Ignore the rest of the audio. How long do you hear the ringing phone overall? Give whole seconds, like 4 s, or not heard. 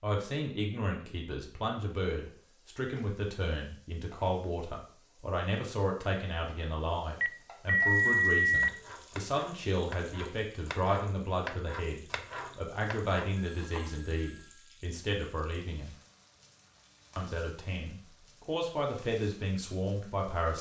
3 s.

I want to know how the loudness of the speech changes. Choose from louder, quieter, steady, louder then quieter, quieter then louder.
steady.